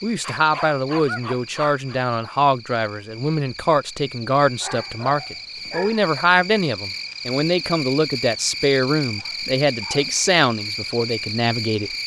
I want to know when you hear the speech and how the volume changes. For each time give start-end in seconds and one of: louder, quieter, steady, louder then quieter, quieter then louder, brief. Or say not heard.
0.0-11.9 steady.